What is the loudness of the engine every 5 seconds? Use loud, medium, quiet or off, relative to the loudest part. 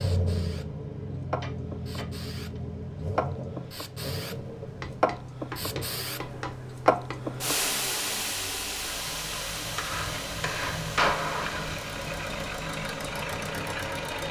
loud, medium, loud.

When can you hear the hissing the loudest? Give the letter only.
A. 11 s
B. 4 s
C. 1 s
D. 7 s
D.